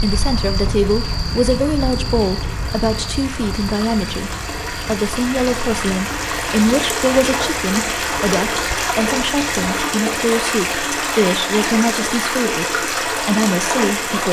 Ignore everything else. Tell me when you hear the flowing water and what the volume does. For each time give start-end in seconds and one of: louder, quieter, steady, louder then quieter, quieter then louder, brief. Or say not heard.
0.0-14.2 louder.